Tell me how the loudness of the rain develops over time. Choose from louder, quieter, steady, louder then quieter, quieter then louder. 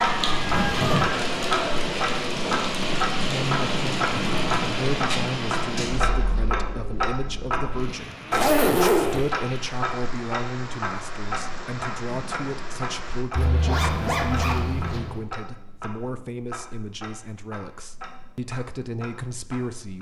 quieter.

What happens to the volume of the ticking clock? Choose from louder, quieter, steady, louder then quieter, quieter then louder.
quieter.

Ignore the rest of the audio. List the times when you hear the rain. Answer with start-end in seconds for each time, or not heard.
0.0-13.2.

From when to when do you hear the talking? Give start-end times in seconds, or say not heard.
3.1-19.9.